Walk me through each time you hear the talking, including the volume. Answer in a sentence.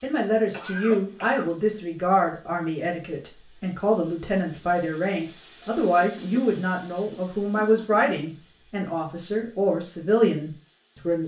The talking can be heard from 0.0 to 11.2 s, at a steady volume.